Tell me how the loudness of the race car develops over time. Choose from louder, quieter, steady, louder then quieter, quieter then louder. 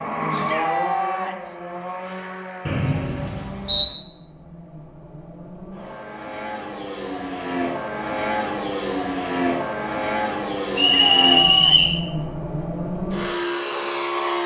quieter then louder.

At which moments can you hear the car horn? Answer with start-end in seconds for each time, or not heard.
not heard.